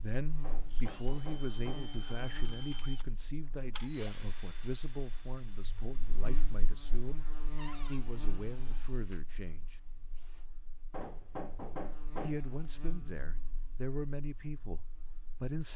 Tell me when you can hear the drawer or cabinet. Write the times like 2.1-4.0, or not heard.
7.5-8.0.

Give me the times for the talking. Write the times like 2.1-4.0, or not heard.
0.0-9.8, 12.2-15.7.